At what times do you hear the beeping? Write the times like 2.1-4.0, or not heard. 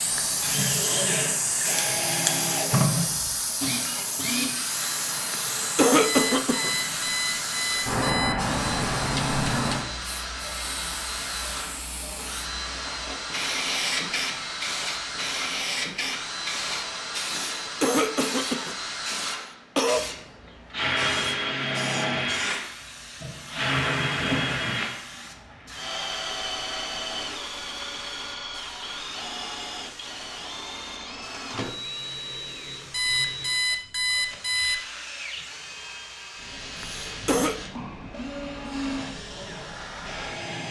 6.0-8.4, 32.9-34.8.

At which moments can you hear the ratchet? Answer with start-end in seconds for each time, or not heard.
not heard.